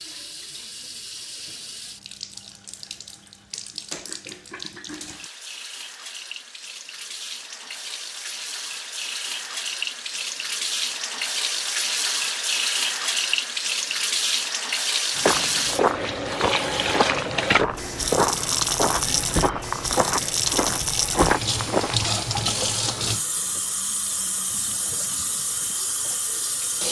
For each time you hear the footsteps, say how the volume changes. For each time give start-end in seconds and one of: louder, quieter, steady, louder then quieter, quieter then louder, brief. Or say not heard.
15.2-22.1 steady.